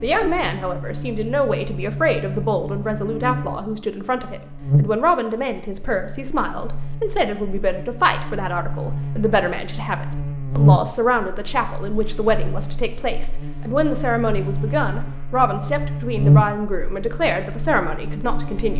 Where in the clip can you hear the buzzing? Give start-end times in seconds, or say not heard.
0.0-18.7.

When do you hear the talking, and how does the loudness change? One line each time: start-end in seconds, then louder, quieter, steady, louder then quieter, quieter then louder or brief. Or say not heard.
0.0-18.7 steady.